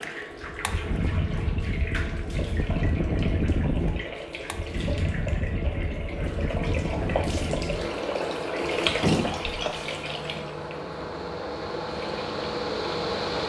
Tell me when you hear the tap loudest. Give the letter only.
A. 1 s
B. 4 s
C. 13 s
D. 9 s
D.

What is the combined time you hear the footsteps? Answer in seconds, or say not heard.
not heard.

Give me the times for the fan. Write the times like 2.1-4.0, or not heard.
0.0-13.4.